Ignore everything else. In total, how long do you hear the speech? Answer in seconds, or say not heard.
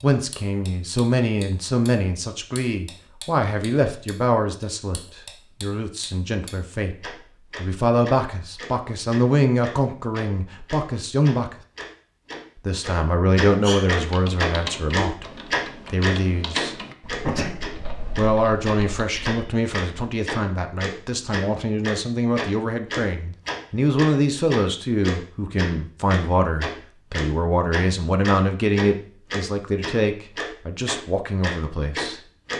29 s.